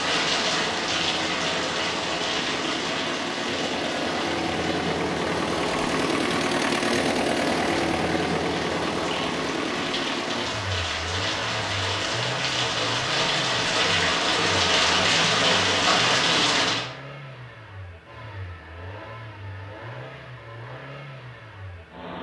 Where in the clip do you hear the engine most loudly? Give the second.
7 s.